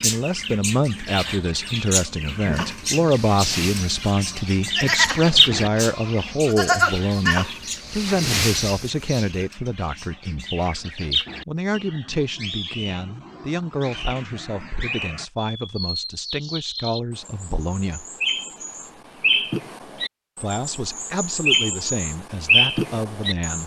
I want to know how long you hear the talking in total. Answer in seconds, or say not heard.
21 s.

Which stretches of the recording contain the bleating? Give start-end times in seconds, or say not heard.
2.5-9.4.